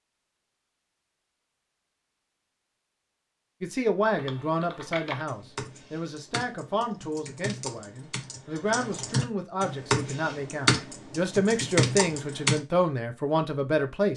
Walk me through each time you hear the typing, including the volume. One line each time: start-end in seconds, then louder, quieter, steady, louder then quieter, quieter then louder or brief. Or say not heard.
4.2-12.6 louder.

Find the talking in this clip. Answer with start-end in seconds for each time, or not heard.
3.6-14.1.